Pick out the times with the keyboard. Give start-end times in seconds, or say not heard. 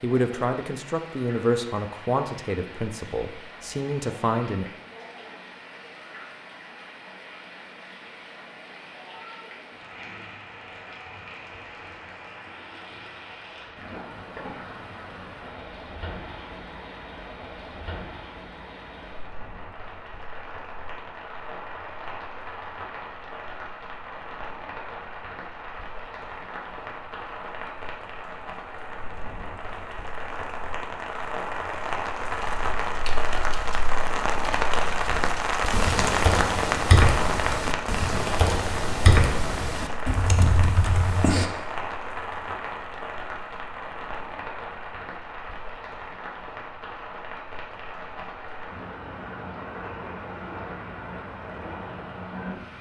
32.2-41.5.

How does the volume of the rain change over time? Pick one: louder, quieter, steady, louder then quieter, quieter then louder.
louder then quieter.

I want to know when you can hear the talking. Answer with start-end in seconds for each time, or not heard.
0.0-4.7.